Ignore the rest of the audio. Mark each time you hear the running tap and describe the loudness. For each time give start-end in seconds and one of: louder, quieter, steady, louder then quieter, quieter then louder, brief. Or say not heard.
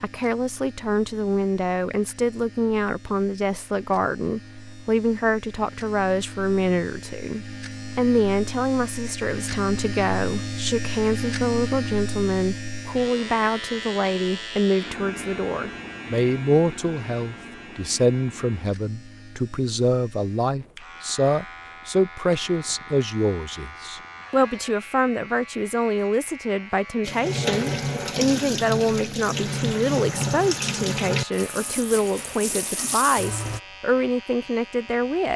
27.0-33.6 quieter.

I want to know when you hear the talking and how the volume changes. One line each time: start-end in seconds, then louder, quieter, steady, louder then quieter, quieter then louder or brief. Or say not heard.
0.0-35.3 steady.